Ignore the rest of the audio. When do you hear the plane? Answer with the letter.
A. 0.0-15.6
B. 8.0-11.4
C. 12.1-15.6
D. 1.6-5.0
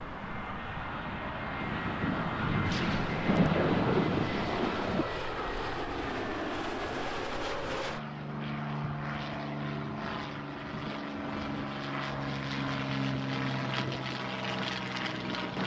A.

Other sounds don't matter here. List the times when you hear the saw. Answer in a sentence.
You can't hear the saw here.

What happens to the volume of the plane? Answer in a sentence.
The loudness of the plane stays about the same.